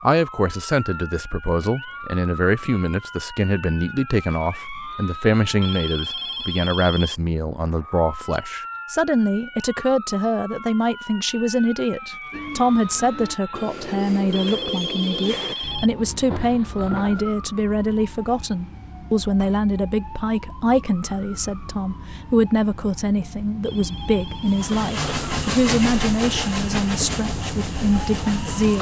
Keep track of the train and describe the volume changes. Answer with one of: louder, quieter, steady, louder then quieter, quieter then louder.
quieter.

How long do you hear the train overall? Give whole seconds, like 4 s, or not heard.
4 s.